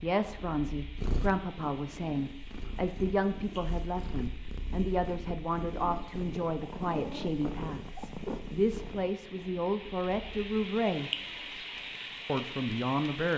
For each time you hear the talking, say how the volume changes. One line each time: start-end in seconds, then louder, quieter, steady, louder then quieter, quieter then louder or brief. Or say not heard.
0.0-11.1 steady
12.2-13.3 brief.